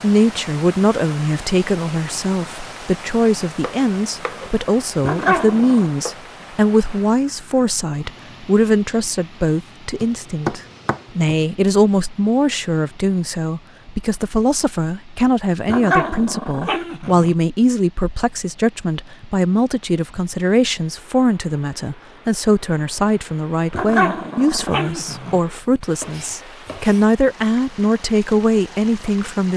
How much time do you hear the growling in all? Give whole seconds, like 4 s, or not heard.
4 s.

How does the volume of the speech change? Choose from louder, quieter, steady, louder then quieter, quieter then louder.
steady.